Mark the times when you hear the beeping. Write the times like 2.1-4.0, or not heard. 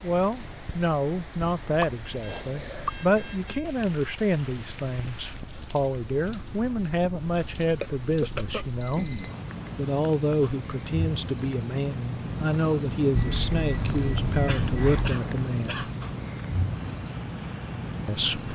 2.0-3.6, 8.6-9.4, 13.2-15.2.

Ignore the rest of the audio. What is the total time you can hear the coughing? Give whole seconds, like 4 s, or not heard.
4 s.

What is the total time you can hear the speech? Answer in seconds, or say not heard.
16 s.